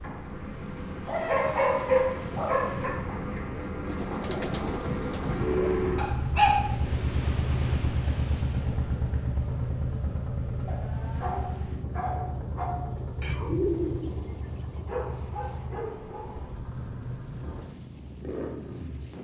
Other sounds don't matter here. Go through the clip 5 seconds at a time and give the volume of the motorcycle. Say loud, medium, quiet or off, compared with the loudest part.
medium, loud, medium, medium.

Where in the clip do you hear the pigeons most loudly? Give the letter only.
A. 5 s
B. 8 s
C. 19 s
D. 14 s
D.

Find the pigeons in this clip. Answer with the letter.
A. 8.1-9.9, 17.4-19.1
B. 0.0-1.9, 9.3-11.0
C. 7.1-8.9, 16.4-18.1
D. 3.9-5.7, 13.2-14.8
D.